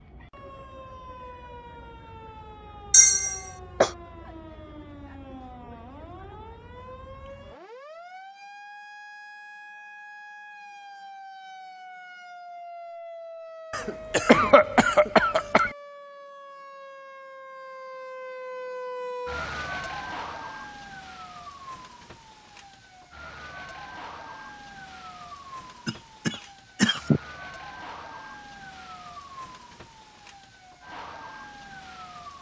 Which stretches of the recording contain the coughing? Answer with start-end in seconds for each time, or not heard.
2.9-3.9, 13.7-15.7, 25.9-27.2.